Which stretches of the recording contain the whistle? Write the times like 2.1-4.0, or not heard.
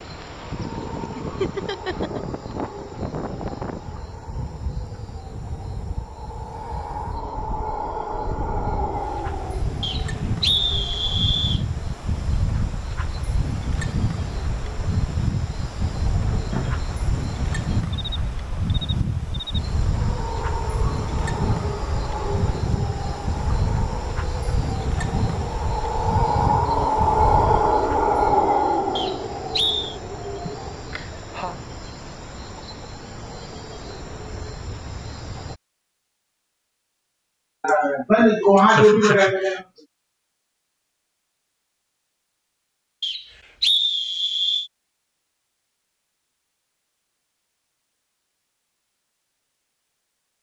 9.8-11.6, 28.9-29.9, 43.0-44.7.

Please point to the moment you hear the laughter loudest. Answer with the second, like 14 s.
39 s.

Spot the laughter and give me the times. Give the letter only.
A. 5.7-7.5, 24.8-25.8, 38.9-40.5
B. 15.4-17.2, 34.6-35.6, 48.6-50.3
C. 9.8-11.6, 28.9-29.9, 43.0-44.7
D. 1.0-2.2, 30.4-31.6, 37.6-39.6
D.